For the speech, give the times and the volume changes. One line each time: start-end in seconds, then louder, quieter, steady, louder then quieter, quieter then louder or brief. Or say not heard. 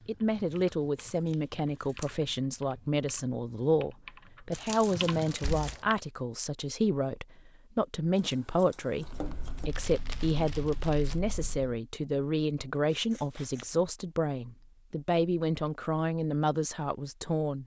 0.1-17.6 steady.